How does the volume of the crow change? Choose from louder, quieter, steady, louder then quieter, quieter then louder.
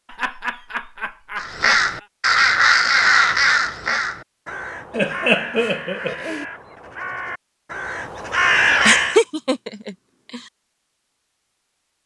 quieter then louder.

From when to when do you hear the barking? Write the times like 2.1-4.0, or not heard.
not heard.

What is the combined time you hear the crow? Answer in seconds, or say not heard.
8 s.